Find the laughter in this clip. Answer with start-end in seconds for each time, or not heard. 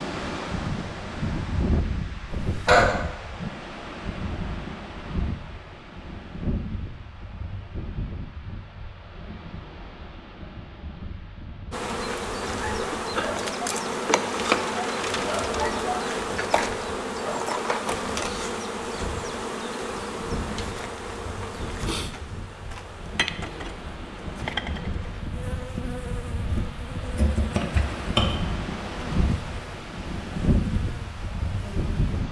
2.4-3.0.